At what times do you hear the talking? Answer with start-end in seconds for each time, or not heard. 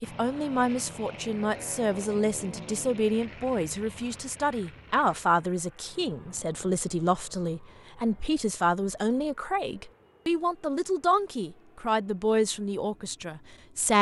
0.0-13.9.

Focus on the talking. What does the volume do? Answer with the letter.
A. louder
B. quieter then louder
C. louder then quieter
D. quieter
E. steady
E.